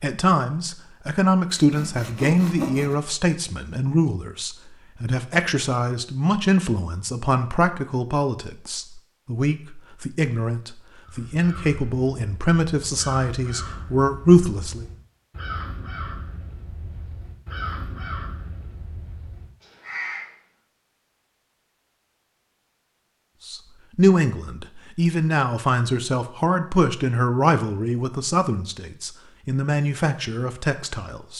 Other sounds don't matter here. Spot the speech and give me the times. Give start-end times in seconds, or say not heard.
0.0-14.8, 23.4-31.3.